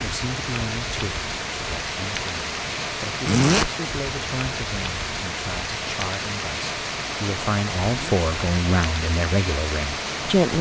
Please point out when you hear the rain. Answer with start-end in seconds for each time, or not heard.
0.0-10.5.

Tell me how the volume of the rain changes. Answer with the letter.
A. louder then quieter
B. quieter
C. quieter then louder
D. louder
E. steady
E.